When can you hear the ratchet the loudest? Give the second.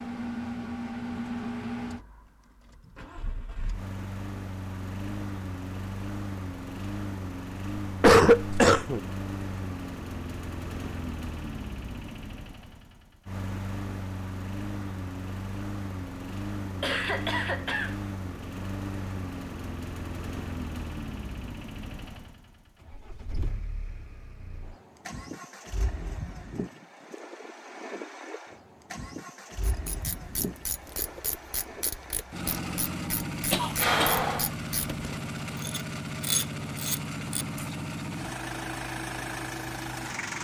36 s.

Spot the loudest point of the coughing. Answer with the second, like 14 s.
8 s.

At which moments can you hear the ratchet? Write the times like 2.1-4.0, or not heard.
29.6-37.7.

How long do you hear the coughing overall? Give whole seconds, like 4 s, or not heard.
3 s.